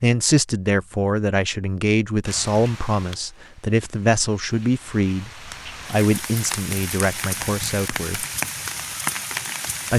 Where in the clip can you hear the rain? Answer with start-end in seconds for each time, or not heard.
2.2-9.9.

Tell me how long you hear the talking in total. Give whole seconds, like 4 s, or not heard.
8 s.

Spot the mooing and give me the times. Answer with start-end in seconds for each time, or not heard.
not heard.